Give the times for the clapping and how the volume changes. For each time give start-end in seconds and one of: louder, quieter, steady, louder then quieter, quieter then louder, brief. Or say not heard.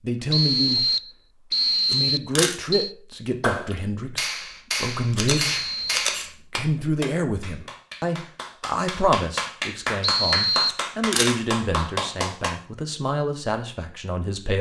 3.4-12.5 quieter then louder.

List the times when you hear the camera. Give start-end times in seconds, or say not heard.
1.9-2.5, 5.1-6.2, 10.7-11.3.